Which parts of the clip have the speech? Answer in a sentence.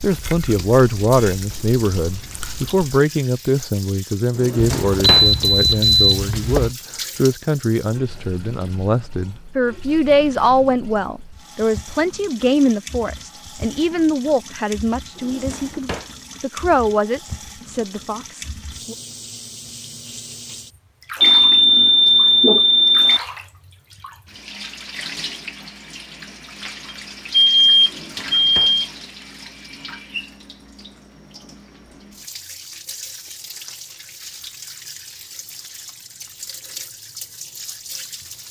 You can hear the speech from 0.0 to 18.9 s.